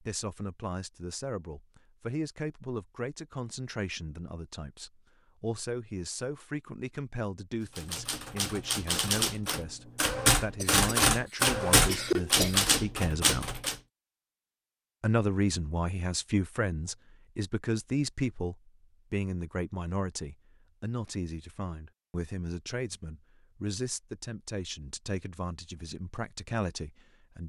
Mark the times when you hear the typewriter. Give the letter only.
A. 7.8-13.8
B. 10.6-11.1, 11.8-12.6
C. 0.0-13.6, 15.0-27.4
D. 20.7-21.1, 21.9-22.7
A.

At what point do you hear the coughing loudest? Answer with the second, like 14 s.
12 s.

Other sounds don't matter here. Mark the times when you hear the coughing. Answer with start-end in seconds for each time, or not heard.
10.6-11.1, 11.8-12.6.